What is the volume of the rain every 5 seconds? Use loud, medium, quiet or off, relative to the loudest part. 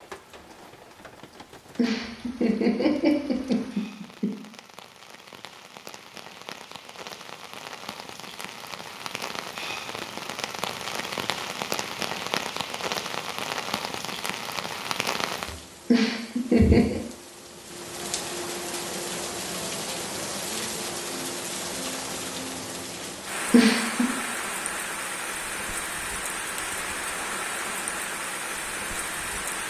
quiet, medium, loud, loud, loud, loud.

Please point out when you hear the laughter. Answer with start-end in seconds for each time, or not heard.
1.8-4.3, 15.9-17.0, 23.5-24.1.